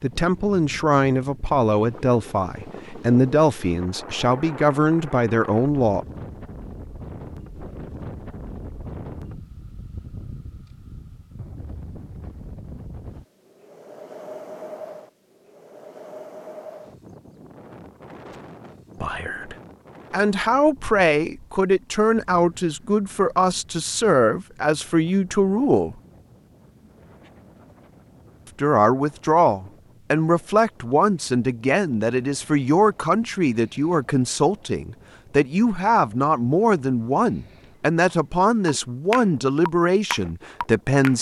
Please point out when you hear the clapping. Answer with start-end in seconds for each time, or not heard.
38.6-41.1.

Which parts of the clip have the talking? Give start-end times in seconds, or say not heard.
0.0-6.0, 19.0-25.9, 28.6-41.1.